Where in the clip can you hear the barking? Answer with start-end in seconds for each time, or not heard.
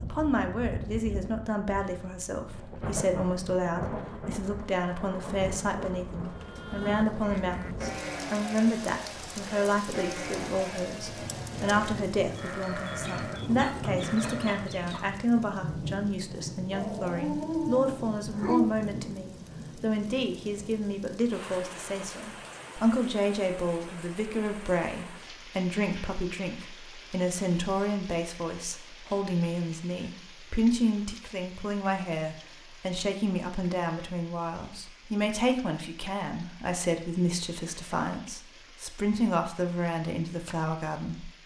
16.7-18.7.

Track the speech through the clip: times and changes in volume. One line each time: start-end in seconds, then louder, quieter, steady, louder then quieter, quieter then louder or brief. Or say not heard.
0.0-41.3 steady.